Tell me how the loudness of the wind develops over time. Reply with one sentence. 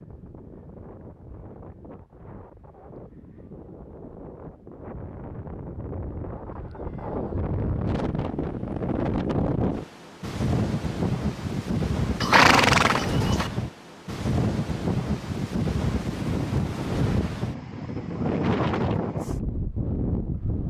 The volume of the wind goes up.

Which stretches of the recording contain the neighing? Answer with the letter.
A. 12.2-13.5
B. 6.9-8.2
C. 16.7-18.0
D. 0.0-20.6
A.